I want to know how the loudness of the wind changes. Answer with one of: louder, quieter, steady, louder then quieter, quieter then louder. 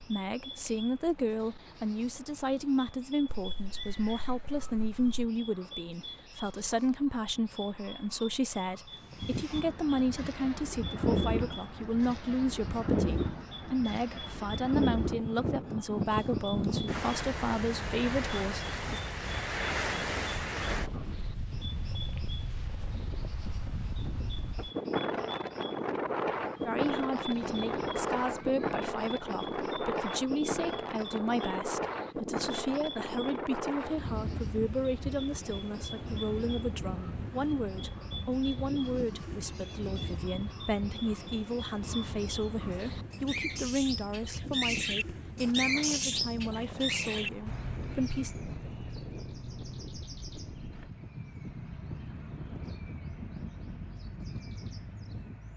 quieter.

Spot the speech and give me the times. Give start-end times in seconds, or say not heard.
0.0-19.0, 26.6-48.4.